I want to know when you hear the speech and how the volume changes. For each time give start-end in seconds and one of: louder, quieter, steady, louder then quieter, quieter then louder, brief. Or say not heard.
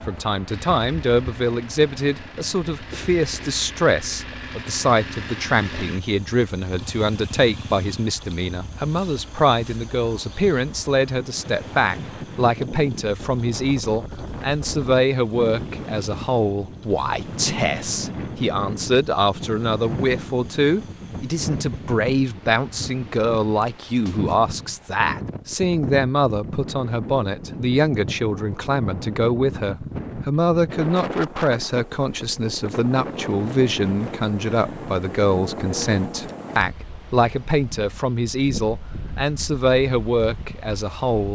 0.1-41.2 steady.